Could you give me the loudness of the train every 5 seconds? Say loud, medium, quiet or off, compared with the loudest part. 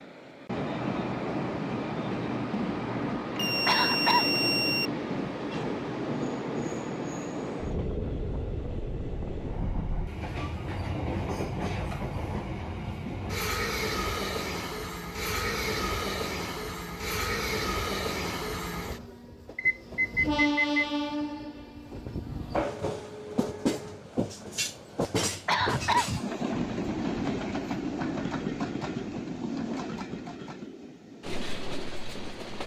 loud, loud, loud, loud, loud, loud, medium.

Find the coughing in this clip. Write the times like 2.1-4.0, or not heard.
3.4-4.2, 25.1-26.1.